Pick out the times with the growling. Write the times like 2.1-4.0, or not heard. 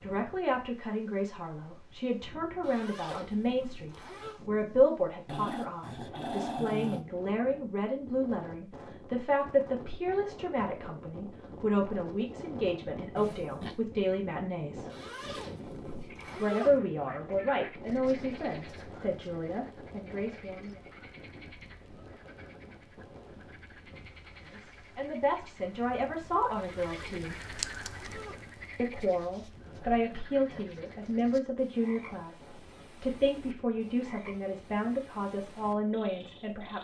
5.2-7.0, 13.2-13.8, 29.6-30.6.